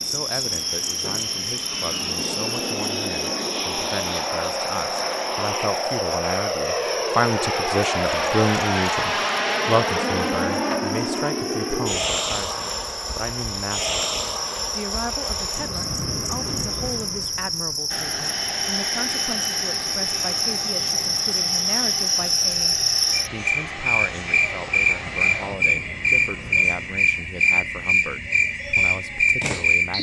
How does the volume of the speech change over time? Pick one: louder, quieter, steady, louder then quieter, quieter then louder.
louder then quieter.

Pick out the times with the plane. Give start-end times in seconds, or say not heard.
0.0-27.2.